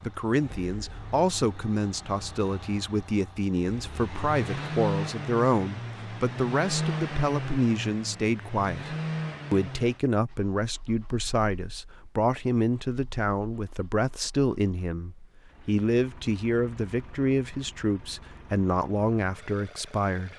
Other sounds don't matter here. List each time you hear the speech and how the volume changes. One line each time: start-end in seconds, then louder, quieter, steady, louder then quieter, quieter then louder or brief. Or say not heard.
0.0-20.3 steady.